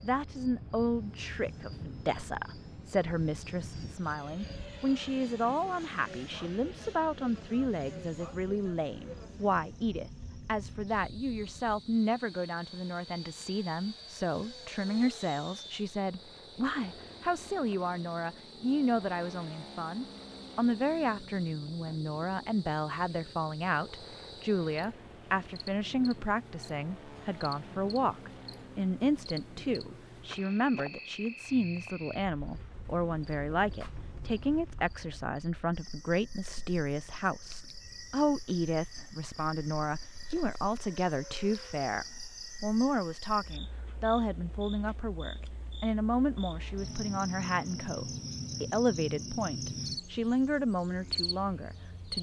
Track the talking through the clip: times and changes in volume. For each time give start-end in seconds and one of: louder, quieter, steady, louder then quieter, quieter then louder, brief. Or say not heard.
0.0-52.1 steady.